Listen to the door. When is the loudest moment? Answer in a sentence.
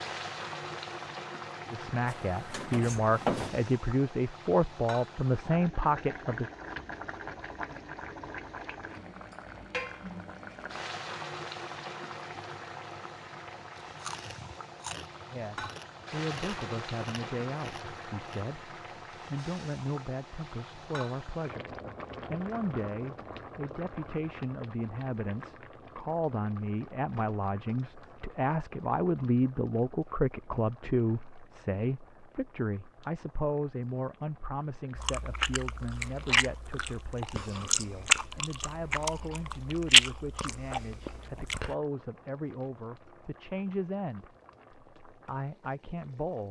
The loudest moment of the door is at 3 seconds.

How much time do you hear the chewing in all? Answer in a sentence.
The chewing can be heard for 11 seconds in total.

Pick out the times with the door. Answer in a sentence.
You can hear the door from 2.0 to 3.6 s.